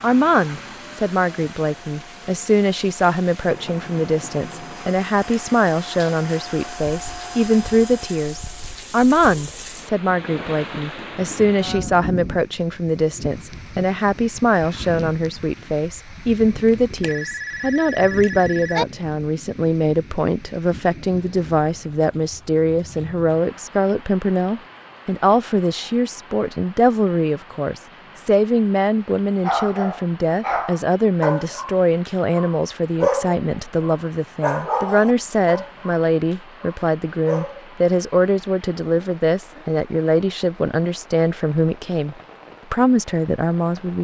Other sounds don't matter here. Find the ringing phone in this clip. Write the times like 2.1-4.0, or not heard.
17.0-18.9.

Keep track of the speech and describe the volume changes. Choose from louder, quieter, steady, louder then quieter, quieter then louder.
steady.